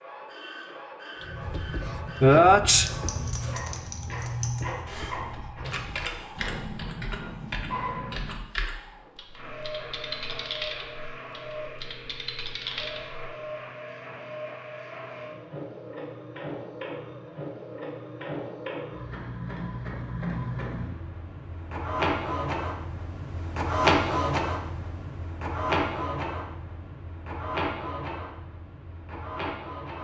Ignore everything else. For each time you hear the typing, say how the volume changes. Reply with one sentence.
You can hear the typing from 1.4 to 13.2 s, at a steady volume.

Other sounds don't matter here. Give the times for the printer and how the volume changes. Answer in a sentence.
The printer can be heard from 0.0 to 29.9 s, getting louder.